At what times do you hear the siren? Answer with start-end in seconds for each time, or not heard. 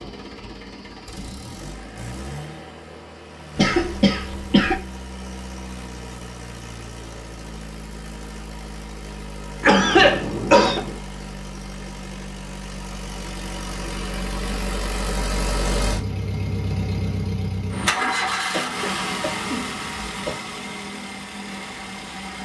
not heard.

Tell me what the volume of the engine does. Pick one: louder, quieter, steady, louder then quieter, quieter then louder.
louder.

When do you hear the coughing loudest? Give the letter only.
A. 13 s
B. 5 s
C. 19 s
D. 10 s
D.